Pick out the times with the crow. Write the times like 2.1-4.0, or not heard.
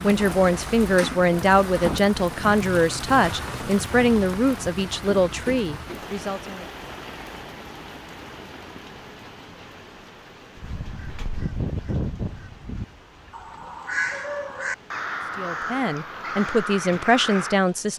10.6-17.6.